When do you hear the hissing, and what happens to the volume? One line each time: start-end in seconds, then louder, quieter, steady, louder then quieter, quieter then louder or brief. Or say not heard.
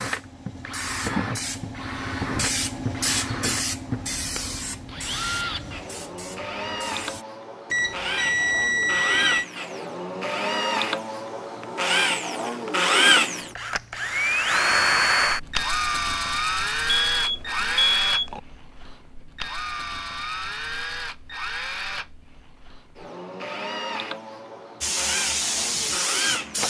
0.0-7.2 louder then quieter
24.8-26.6 brief.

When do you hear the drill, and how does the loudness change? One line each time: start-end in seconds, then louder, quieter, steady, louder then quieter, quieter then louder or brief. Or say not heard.
0.0-26.6 louder then quieter.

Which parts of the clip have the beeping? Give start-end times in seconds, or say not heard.
7.7-9.4, 16.9-18.4.